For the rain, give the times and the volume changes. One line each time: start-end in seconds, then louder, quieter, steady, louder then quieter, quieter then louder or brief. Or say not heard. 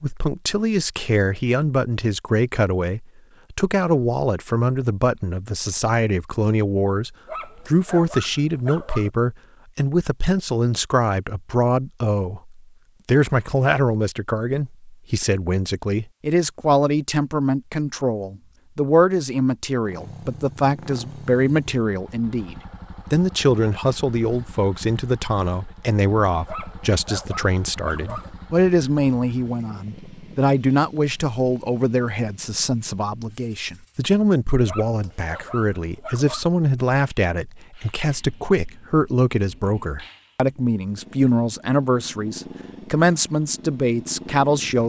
not heard.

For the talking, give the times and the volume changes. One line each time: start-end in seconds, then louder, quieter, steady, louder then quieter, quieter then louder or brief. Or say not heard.
0.0-44.8 steady.